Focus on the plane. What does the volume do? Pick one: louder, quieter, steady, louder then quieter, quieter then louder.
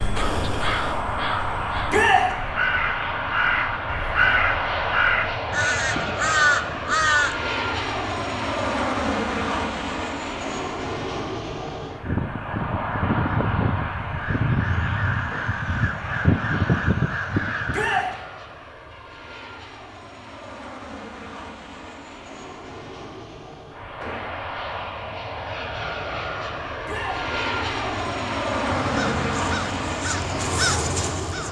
quieter then louder.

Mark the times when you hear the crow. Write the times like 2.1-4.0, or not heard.
0.0-7.3, 12.0-18.1, 28.7-31.4.